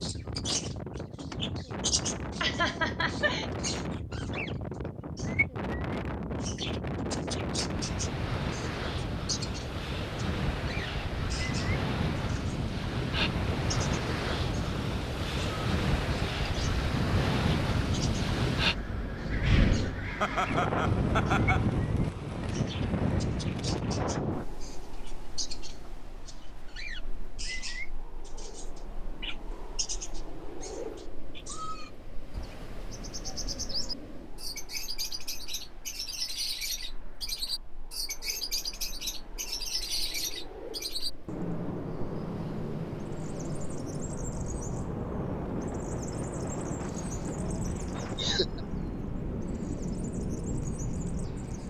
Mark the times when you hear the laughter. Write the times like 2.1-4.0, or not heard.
2.4-3.5, 20.2-21.8, 48.0-48.6.